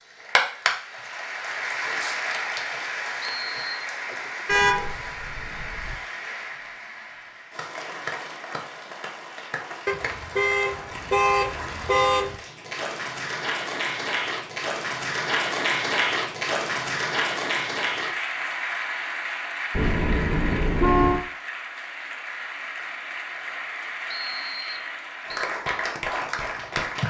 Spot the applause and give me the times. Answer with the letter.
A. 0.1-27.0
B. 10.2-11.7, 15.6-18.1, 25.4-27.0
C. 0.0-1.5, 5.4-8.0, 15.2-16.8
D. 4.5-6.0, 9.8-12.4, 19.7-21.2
A.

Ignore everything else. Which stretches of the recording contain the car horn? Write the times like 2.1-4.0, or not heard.
4.5-6.0, 9.8-12.4, 19.7-21.2.